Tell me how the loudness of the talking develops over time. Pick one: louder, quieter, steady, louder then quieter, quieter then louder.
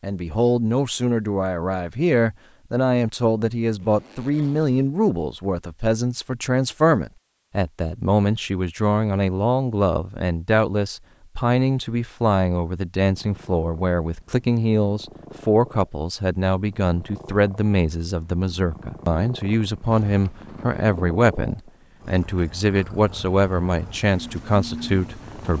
steady.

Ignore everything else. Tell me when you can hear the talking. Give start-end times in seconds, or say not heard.
0.0-25.5.